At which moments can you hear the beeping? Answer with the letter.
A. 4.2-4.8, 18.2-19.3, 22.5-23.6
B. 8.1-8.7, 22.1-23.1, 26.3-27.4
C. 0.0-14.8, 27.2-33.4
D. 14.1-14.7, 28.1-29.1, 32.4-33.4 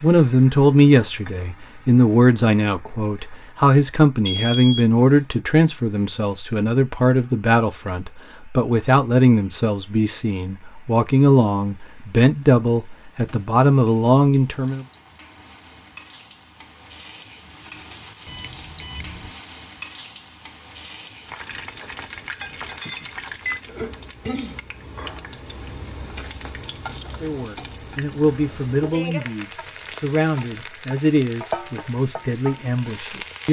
A.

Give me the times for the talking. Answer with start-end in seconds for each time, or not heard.
0.0-14.8, 27.2-33.4.